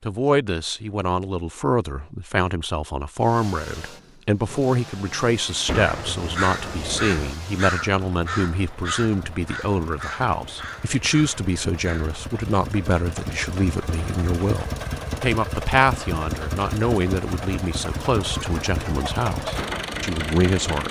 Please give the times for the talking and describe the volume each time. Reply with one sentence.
The talking can be heard from 0.0 to 20.8 s, at a steady volume.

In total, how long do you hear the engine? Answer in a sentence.
You can hear the engine for 18 seconds altogether.